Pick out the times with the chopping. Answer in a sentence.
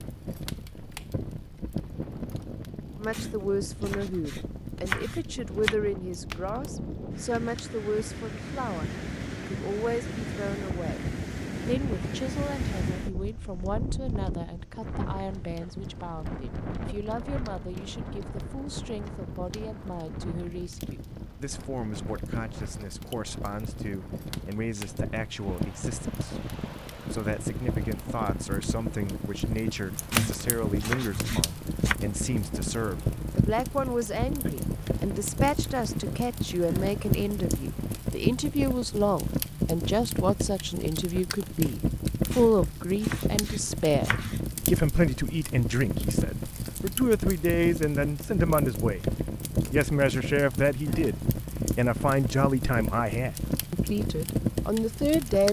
The chopping can be heard from 3.1 to 5.8 s, from 30.1 to 31.9 s and from 42.3 to 44.5 s.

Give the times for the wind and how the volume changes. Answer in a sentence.
The wind can be heard from 0.0 to 38.0 s, getting louder then quieter.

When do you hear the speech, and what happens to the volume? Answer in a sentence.
You can hear the speech from 3.0 to 11.1 s, at a steady volume; and from 11.7 to 55.4 s, getting louder.